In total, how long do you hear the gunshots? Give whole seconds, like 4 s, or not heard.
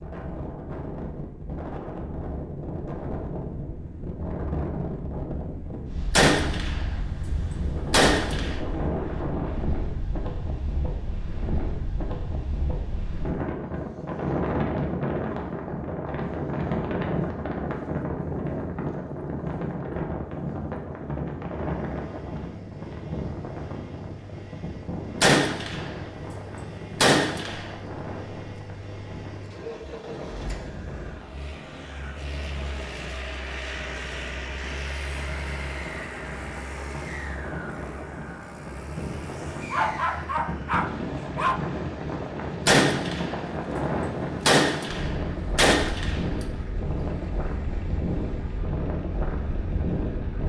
7 s.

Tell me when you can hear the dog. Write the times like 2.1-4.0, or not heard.
39.5-41.6.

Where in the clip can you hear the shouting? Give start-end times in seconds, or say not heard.
not heard.